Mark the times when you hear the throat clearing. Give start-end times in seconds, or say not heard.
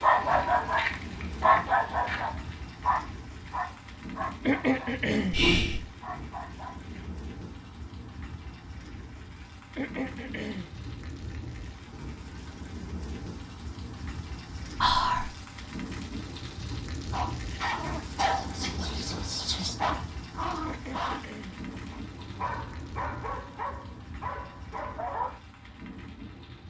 4.5-5.4, 9.8-10.7, 20.6-21.6.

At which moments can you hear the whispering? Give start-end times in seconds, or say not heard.
5.3-5.8, 14.8-15.3, 18.2-19.8.